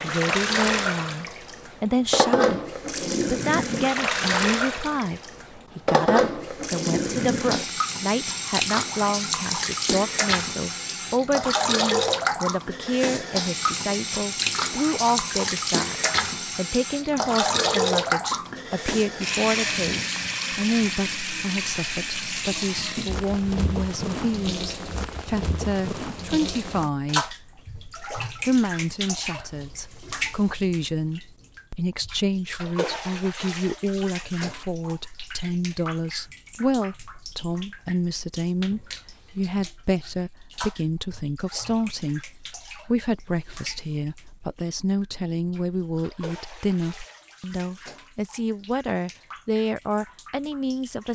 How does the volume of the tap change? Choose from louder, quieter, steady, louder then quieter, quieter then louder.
quieter.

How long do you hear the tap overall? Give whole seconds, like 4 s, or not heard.
51 s.